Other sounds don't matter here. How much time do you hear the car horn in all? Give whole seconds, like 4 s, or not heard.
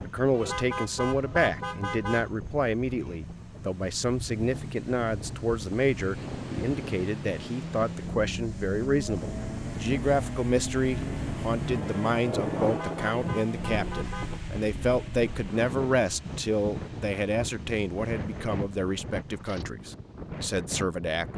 4 s.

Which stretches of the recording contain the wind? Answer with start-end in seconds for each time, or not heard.
0.0-21.3.